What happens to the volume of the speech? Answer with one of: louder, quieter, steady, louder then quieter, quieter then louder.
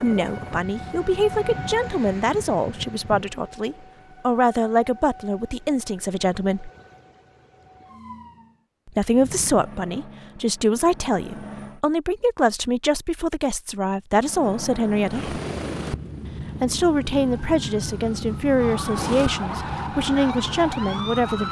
steady.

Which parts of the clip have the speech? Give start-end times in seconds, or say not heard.
0.0-6.7, 8.8-15.4, 16.6-21.4.